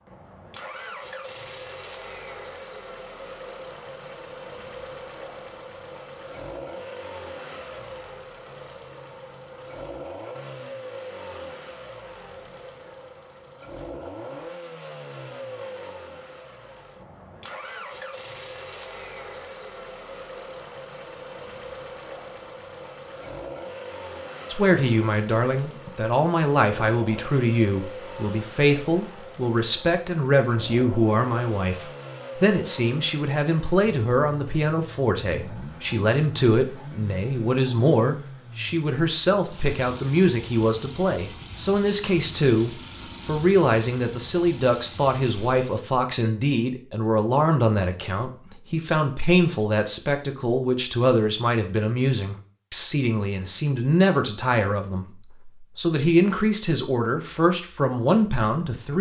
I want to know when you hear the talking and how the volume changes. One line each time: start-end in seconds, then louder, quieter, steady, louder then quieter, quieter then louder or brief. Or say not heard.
24.5-58.9 steady.